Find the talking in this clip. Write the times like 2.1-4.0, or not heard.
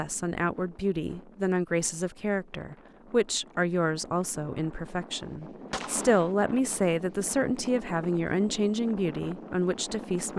0.0-10.3.